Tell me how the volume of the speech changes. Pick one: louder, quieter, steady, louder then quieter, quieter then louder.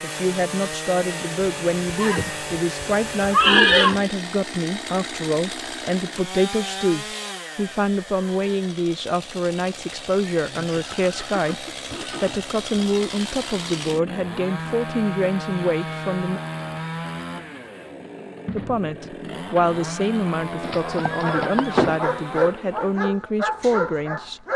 steady.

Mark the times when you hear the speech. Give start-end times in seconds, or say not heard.
0.0-16.4, 18.5-24.4.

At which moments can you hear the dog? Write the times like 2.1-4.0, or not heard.
21.1-24.5.